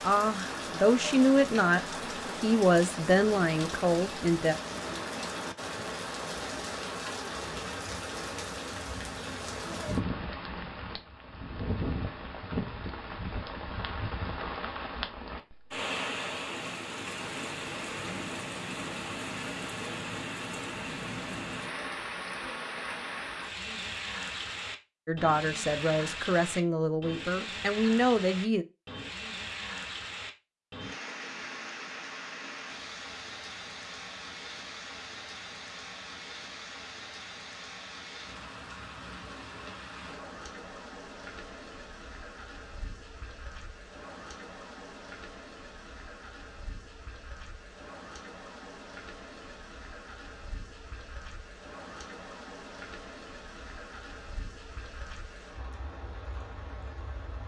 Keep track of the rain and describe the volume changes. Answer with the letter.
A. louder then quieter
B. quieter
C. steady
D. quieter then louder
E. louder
B.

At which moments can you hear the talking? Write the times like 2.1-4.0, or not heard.
0.0-4.5, 25.1-28.6.